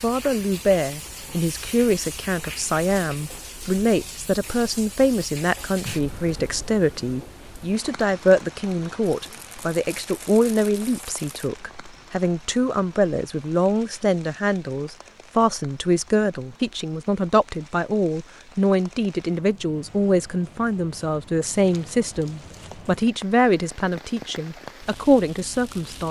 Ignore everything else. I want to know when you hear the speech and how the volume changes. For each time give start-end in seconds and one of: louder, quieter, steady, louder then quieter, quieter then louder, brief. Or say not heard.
0.0-26.0 steady.